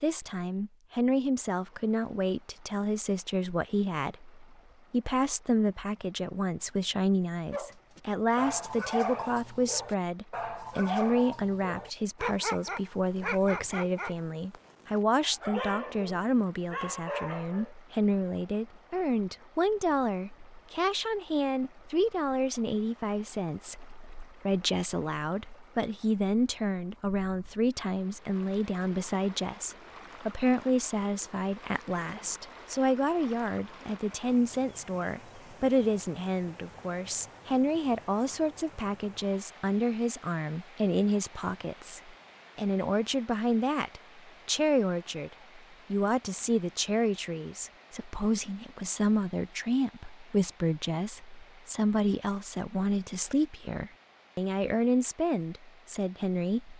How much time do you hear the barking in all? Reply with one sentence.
You can hear the barking for 10 seconds altogether.